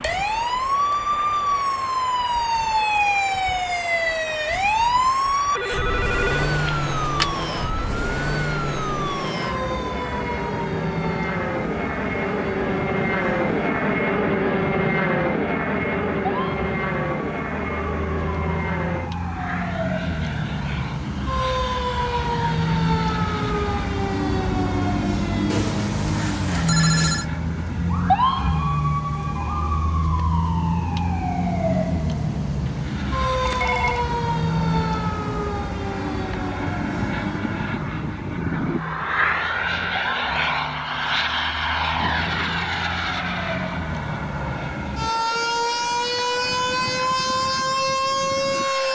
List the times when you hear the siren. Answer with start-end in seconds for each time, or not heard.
0.0-48.9.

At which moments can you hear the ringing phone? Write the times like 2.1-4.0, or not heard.
5.5-7.2, 25.5-27.2, 33.5-34.0.